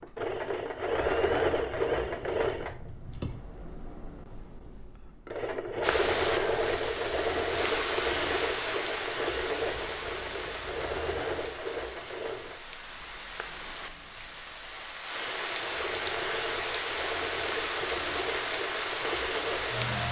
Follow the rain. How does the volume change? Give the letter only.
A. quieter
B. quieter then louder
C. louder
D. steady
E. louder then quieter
B.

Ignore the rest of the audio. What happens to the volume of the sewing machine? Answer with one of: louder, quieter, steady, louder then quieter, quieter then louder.
quieter then louder.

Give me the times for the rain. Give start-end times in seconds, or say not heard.
5.8-20.0.